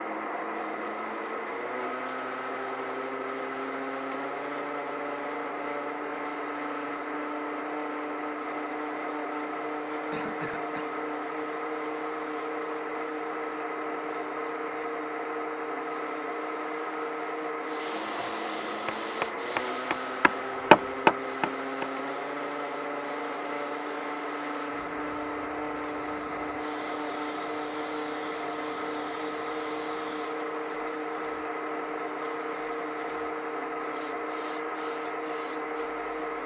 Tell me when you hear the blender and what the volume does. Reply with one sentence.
The blender can be heard from 0.0 to 36.4 s, at a steady volume.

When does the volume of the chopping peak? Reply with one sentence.
The volume of the chopping peaks at 21 seconds.